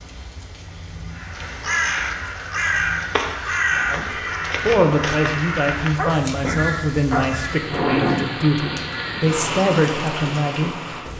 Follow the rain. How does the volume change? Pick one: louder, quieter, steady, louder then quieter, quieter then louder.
louder.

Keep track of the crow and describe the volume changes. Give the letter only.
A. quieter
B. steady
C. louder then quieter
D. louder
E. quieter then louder
A.